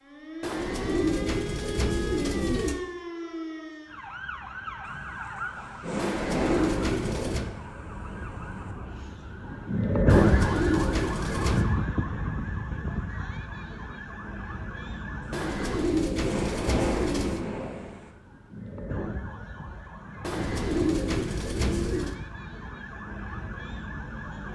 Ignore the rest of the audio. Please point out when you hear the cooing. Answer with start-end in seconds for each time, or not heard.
0.4-2.8, 6.0-7.5, 10.1-11.7, 15.3-17.4, 20.2-22.1.